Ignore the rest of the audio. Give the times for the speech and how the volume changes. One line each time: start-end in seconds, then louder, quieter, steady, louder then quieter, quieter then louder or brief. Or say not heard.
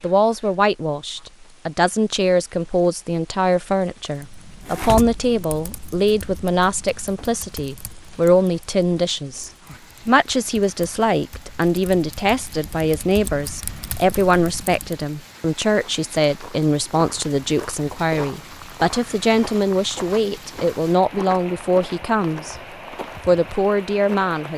0.0-22.6 steady
23.2-24.5 brief.